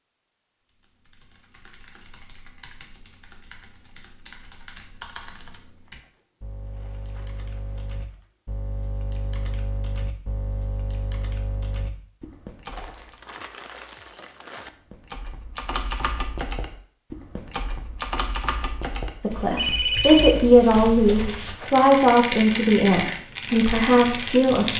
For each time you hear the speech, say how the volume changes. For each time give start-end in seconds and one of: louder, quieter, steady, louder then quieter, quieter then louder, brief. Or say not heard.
19.2-24.7 steady.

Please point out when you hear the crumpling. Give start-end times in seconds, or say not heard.
5.8-8.3, 12.7-14.7.